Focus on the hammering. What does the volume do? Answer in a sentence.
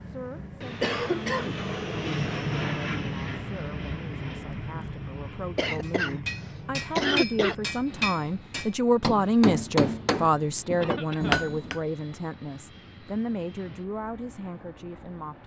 The volume of the hammering goes up.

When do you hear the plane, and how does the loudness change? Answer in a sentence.
The plane can be heard from 0.0 to 15.4 s, getting quieter.